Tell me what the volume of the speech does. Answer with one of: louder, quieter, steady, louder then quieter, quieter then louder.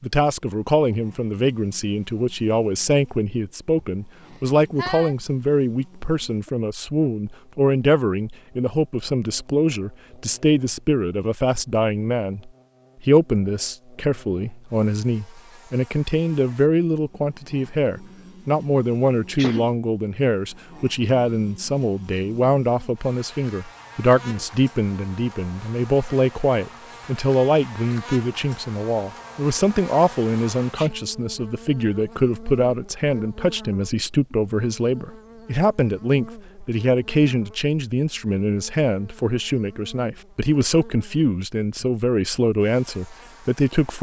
steady.